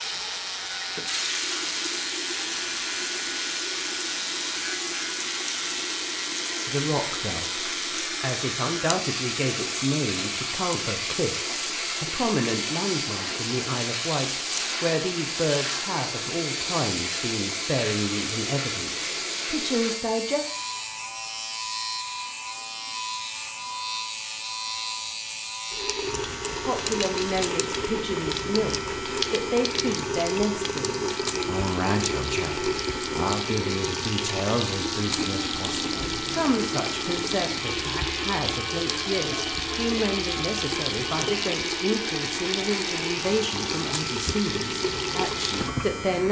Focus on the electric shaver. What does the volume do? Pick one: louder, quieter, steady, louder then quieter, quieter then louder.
steady.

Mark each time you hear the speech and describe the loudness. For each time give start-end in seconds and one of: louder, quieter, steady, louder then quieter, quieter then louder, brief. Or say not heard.
6.7-20.4 steady
26.6-46.2 steady.